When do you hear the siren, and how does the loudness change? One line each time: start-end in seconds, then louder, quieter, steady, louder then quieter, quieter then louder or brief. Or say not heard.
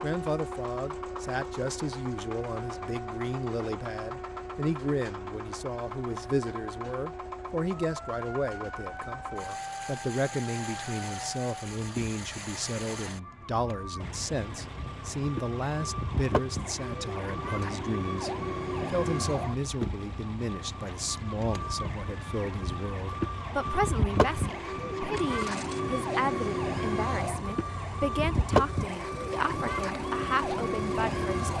0.0-31.5 louder.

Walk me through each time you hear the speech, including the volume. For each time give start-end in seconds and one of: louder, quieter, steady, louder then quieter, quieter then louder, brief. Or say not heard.
0.0-31.5 steady.